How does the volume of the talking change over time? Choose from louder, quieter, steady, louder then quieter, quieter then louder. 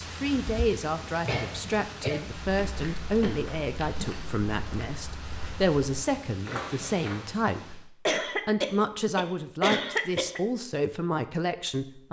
steady.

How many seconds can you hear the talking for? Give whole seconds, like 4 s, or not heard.
12 s.